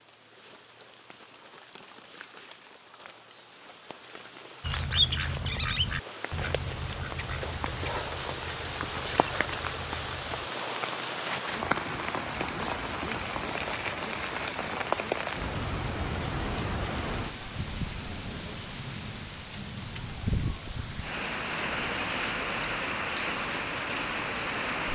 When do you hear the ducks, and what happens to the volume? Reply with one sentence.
You can hear the ducks from 4.6 to 10.4 s, getting quieter.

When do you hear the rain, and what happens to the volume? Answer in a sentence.
You can hear the rain from 0.0 to 24.9 s, getting louder.